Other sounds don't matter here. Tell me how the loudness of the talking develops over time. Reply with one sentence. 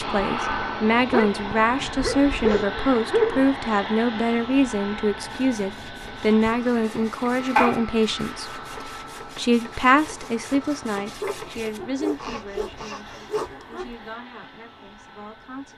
The loudness of the talking goes down.